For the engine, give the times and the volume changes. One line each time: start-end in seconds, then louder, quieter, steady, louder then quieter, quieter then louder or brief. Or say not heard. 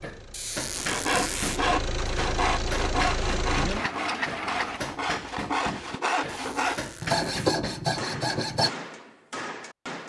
0.0-4.8 louder.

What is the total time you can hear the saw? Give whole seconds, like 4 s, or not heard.
8 s.